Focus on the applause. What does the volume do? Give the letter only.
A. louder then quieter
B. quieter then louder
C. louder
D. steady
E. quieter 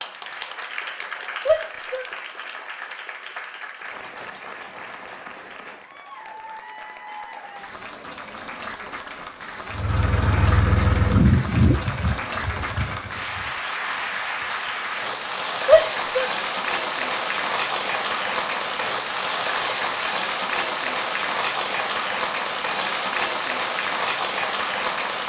C.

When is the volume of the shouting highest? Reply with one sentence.
The loudest moment of the shouting is at 16 seconds.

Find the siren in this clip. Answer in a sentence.
The siren can't be heard in this clip.